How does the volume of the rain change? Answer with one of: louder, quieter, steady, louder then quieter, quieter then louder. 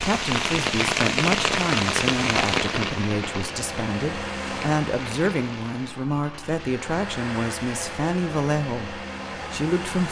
quieter.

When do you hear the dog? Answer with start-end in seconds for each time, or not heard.
not heard.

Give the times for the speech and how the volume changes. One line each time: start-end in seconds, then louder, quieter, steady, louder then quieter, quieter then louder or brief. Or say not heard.
0.0-10.0 steady.